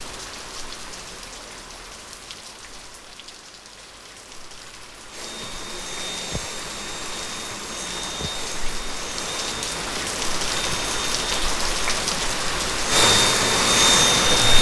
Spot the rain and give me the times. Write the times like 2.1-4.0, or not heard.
0.0-14.5.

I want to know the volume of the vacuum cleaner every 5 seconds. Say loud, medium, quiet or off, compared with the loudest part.
off, quiet, loud.